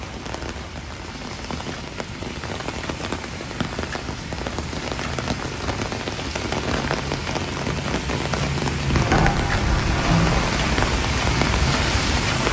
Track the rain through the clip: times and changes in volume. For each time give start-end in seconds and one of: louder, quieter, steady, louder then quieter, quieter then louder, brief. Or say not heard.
0.0-12.4 louder.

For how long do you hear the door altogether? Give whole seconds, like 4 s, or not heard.
2 s.